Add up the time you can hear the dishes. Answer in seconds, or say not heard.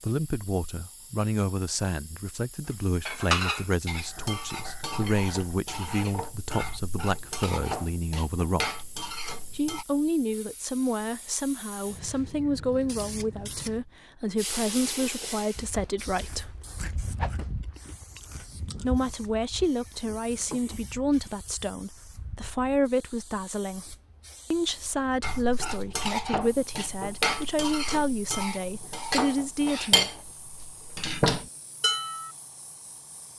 14 s.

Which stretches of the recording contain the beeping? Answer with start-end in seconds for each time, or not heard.
not heard.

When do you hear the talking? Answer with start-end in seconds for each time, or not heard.
0.0-8.7, 9.6-16.6, 18.8-30.1.